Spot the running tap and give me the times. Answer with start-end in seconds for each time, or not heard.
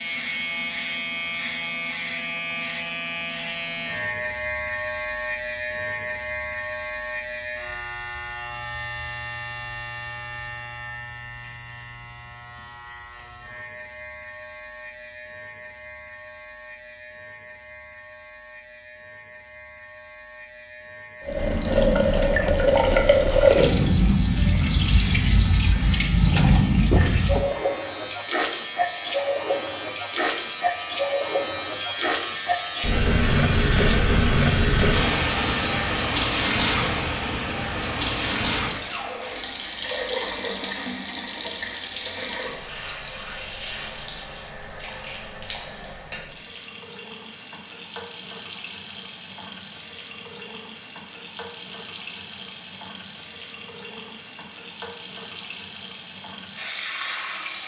21.2-57.6.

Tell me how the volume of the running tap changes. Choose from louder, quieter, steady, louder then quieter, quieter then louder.
quieter.